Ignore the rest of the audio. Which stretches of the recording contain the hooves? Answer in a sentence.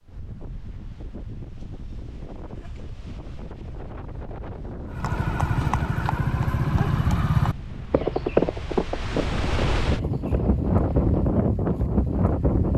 You can hear the hooves from 4.8 to 11.2 s.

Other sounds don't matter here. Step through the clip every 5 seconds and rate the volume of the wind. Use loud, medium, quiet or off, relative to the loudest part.
quiet, medium, loud.